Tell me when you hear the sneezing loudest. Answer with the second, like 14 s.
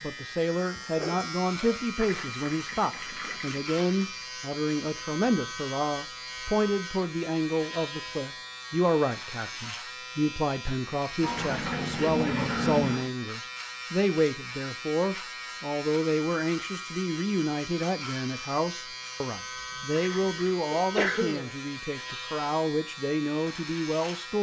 21 s.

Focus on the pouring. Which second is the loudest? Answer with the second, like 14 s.
13 s.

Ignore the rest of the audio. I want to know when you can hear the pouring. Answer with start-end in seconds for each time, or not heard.
1.9-4.2, 11.2-13.1, 20.0-20.6.